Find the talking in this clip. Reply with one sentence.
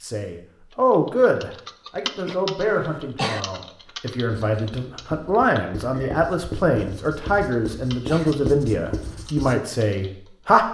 The talking can be heard from 0.0 to 10.7 s.